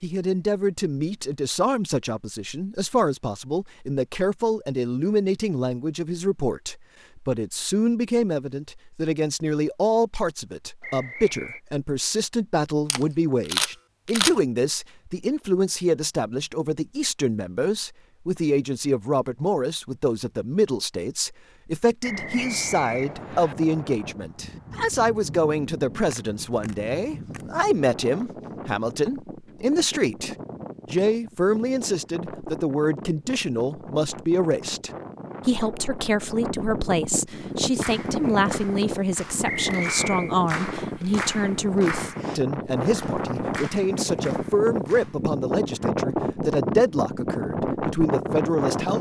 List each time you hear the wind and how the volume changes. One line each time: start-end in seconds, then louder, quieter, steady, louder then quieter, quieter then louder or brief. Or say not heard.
22.1-48.9 louder.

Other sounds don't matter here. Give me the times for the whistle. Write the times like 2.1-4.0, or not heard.
10.8-11.6, 22.0-23.6, 39.5-40.4.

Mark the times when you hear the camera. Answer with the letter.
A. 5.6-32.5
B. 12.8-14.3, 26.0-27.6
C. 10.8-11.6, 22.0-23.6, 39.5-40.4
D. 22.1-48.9
B.